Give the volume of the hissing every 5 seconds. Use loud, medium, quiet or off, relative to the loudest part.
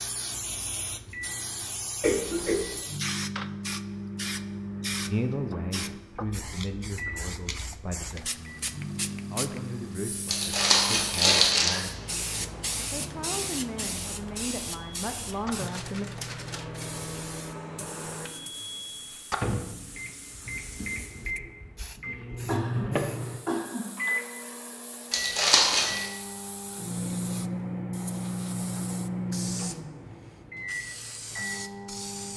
loud, loud, loud, medium, quiet, medium, medium.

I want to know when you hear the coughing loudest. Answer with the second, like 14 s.
2 s.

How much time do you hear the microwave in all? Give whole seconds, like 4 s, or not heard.
32 s.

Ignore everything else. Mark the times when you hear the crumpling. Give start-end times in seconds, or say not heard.
10.2-11.8, 25.1-26.1.